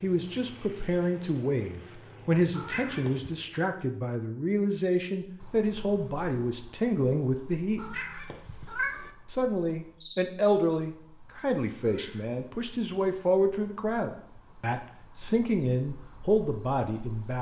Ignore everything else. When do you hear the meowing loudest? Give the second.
9 s.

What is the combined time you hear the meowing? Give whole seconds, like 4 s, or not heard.
3 s.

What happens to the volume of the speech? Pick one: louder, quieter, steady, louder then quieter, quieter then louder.
steady.